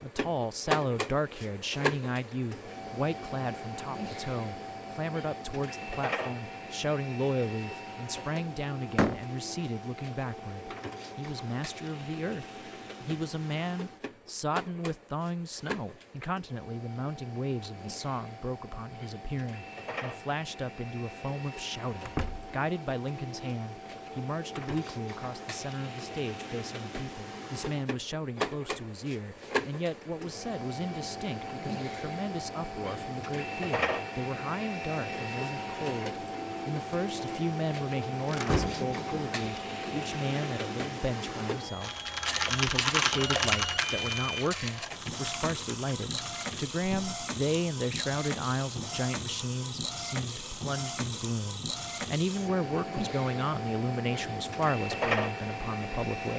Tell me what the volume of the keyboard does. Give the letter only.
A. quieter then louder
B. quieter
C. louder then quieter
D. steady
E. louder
B.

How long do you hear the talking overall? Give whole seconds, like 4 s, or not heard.
56 s.